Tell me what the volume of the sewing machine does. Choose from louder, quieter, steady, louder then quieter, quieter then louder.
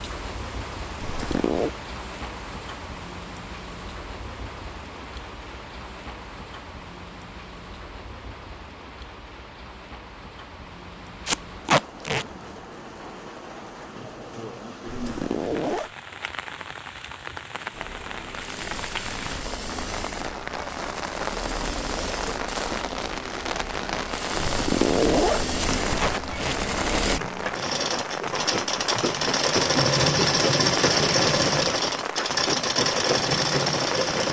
louder.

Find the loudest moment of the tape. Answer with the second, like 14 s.
12 s.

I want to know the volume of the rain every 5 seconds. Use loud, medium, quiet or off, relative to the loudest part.
medium, medium, medium, medium, loud, loud, loud.